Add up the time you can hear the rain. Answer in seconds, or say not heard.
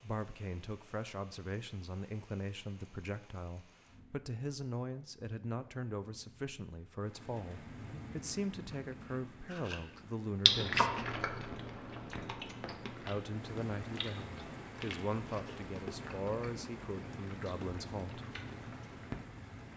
20 s.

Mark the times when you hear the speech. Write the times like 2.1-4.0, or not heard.
0.0-11.0, 13.1-18.2.